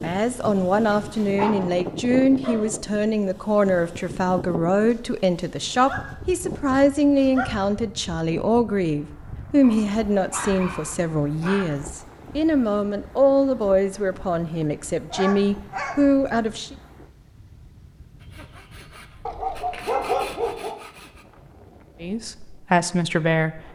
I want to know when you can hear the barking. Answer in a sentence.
The barking can be heard from 0.9 to 2.7 s, from 4.9 to 7.5 s, from 9.6 to 11.7 s, from 15.1 to 16.6 s and from 19.2 to 20.8 s.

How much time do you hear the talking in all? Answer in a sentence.
The talking can be heard for 18 seconds in total.